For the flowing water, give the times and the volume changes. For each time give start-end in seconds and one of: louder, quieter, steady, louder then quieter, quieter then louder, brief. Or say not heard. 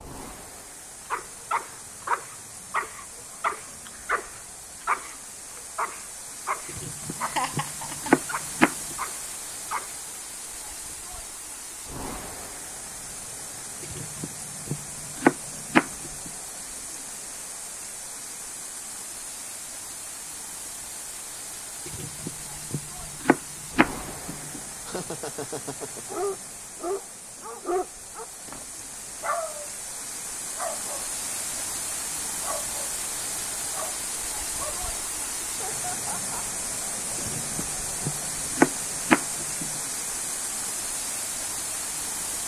0.0-42.4 louder.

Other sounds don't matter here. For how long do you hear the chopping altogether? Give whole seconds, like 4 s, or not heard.
10 s.